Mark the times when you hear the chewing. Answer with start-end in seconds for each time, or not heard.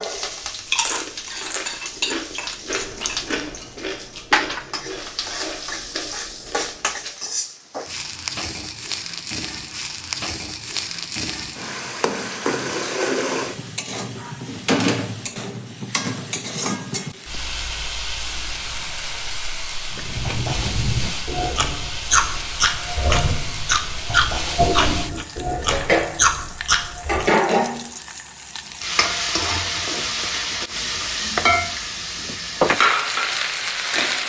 0.0-7.2, 19.9-27.3.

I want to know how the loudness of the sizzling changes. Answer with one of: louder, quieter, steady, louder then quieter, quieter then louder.
louder.